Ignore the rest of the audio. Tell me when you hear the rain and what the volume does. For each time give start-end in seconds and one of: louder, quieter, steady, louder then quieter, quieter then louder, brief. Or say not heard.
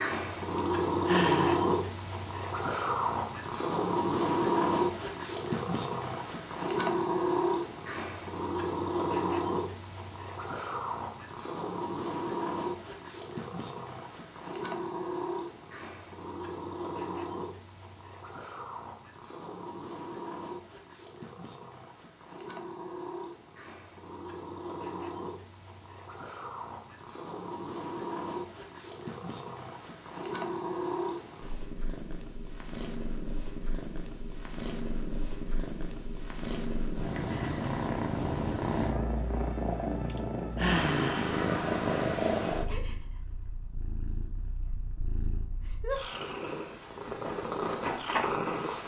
not heard.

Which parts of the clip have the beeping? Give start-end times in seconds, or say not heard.
not heard.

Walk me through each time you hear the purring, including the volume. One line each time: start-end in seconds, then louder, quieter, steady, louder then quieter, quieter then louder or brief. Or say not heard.
0.0-48.8 quieter then louder.